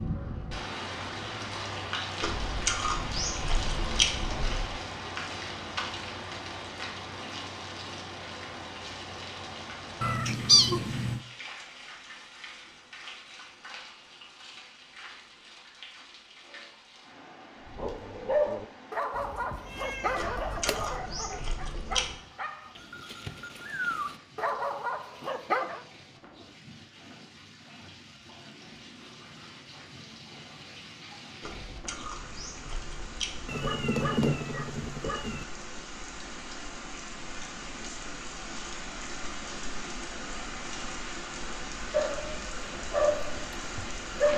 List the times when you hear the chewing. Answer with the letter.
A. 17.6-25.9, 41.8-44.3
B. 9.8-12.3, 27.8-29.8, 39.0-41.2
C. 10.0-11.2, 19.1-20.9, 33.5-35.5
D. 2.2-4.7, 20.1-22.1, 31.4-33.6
D.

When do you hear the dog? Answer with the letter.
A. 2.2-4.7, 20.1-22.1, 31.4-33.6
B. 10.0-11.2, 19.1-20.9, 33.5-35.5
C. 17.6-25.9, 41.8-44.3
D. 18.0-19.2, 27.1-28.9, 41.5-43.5
C.